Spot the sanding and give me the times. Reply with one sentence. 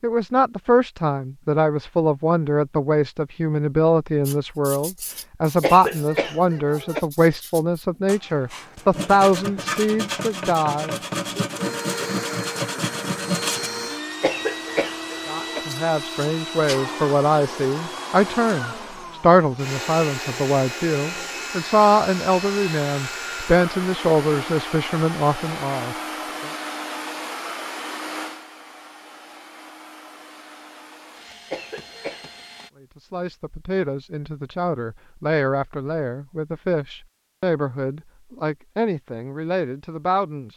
You can hear the sanding from 4.2 to 13.7 s.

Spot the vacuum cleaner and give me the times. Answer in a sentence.
The vacuum cleaner can be heard from 11.6 to 32.7 s.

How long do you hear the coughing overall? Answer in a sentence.
You can hear the coughing for 4 seconds altogether.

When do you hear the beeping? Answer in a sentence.
You can't hear the beeping here.